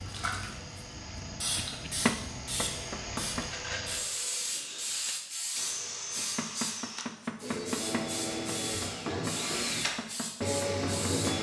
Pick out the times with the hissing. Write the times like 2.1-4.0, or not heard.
0.0-11.3.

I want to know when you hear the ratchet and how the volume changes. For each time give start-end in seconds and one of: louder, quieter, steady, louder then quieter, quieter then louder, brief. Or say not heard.
not heard.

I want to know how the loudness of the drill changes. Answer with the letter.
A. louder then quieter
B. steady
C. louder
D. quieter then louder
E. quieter
C.